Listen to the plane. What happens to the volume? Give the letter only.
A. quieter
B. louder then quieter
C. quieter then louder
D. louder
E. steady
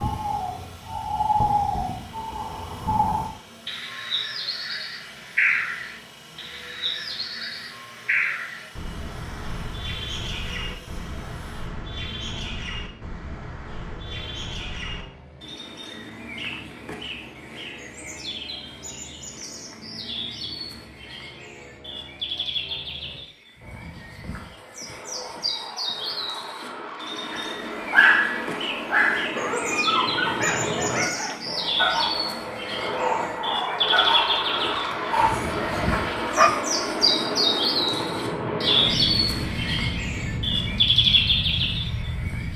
D.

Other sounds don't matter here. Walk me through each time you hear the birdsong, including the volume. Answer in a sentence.
The birdsong can be heard from 0.0 to 42.5 s, getting quieter then louder.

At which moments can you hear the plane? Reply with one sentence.
You can hear the plane from 0.0 to 42.5 s.